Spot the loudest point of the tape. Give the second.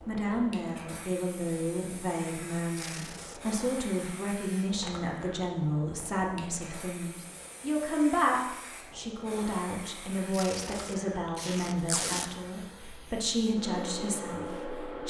12 s.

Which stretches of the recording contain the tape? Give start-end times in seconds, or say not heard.
2.8-3.4, 10.3-12.3.